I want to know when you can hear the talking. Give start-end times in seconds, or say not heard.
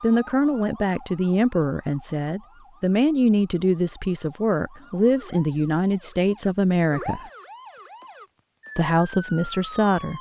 0.0-7.2, 8.8-10.1.